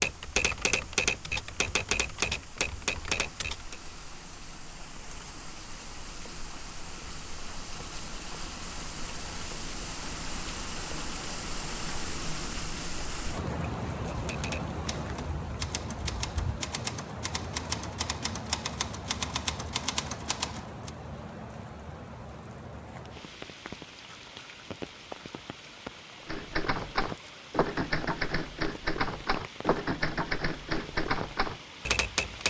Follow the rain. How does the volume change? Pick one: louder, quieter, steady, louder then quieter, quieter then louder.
louder then quieter.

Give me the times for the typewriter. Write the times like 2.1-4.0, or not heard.
0.0-3.8, 14.1-20.9, 26.2-32.4.